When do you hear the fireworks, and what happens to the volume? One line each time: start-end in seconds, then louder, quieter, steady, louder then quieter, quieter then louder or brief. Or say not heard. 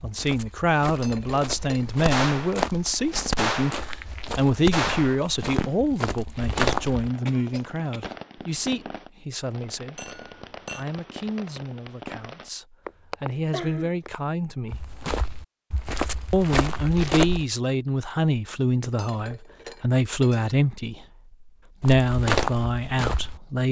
1.6-12.5 quieter.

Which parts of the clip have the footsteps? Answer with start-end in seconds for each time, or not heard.
0.0-7.1, 14.7-17.4, 21.8-23.4.